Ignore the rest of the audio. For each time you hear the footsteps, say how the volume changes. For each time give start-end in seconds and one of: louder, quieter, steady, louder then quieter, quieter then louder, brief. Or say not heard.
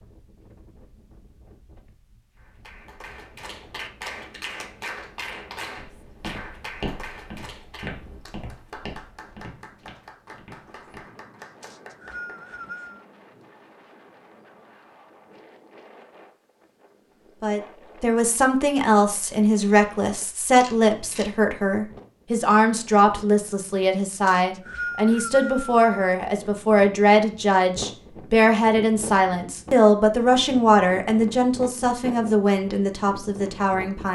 5.8-11.1 quieter.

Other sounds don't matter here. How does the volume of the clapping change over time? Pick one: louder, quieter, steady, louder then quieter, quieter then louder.
quieter.